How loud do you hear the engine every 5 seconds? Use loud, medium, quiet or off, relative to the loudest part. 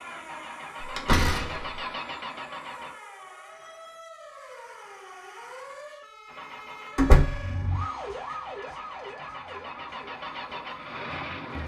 loud, medium, loud.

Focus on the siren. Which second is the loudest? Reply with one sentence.
The volume of the siren peaks at 8 seconds.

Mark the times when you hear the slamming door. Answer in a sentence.
The slamming door can be heard from 0.8 to 1.8 s and from 7.0 to 7.5 s.